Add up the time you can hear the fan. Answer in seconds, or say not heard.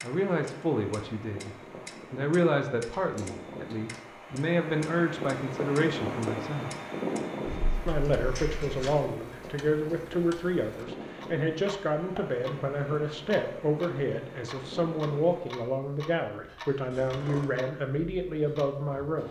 16 s.